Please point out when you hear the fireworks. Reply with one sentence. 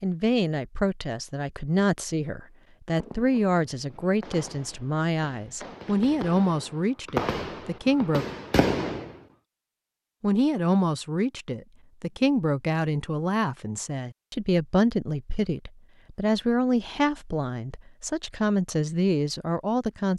The fireworks can be heard from 3.0 to 9.2 s.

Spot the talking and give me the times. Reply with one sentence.
The talking can be heard from 0.0 to 8.2 s and from 10.2 to 20.1 s.